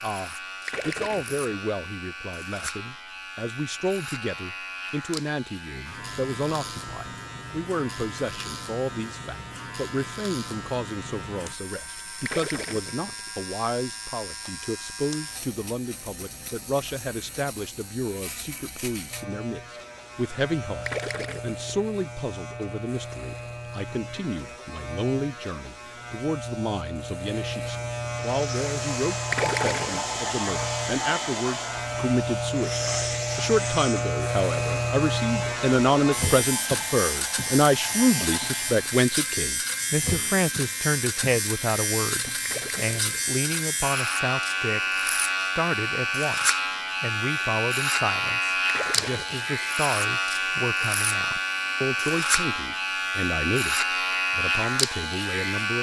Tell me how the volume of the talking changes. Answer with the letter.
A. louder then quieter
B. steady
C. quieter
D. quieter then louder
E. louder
A.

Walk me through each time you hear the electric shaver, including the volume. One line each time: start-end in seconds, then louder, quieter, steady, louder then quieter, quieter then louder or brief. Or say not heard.
0.0-55.7 louder.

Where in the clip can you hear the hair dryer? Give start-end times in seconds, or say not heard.
28.1-38.9.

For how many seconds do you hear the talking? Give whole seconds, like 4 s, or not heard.
56 s.